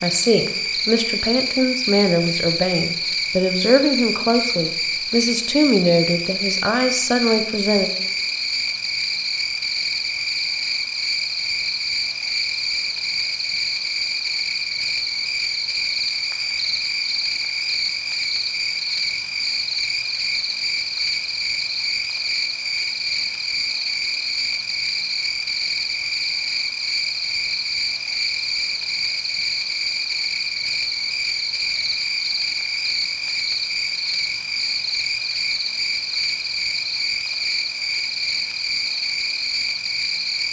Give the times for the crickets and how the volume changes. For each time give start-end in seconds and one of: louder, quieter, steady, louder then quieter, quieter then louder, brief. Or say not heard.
0.0-40.4 steady.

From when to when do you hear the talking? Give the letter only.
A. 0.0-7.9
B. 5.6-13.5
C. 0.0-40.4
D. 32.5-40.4
A.